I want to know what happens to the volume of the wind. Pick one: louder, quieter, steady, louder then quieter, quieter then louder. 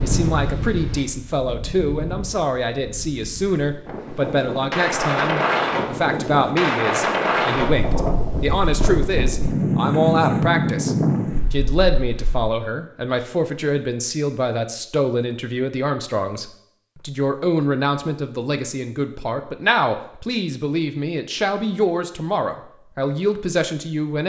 louder.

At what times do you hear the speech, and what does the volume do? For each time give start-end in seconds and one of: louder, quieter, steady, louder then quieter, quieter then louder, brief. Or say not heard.
0.0-24.2 steady.